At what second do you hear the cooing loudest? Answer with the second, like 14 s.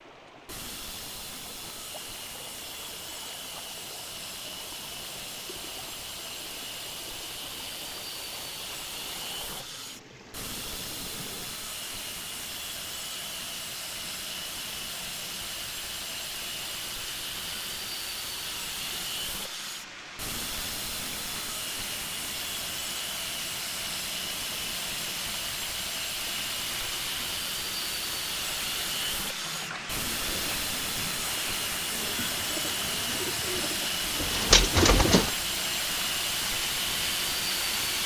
35 s.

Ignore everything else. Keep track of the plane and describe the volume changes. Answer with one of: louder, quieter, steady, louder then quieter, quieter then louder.
louder.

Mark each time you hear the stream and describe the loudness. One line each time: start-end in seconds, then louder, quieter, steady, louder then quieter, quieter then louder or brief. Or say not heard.
0.0-38.0 louder.